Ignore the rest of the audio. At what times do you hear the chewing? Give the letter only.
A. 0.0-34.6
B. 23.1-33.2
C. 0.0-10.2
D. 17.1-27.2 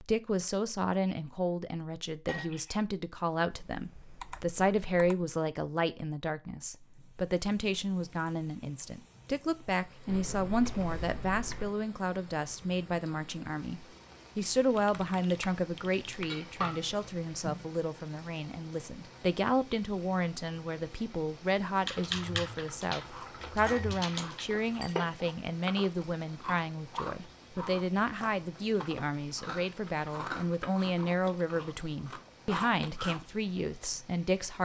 B.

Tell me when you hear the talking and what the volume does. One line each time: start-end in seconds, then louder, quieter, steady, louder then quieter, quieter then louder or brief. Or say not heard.
0.0-34.6 steady.